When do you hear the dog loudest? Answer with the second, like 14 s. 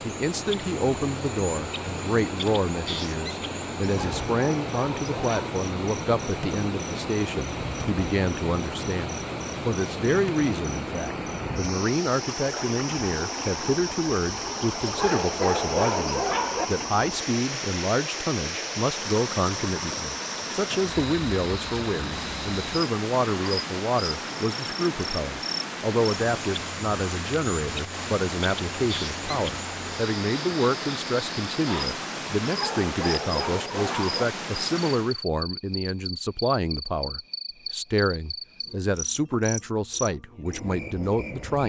16 s.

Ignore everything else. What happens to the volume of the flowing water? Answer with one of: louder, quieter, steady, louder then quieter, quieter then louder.
steady.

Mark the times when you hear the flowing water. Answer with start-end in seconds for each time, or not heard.
0.0-35.2.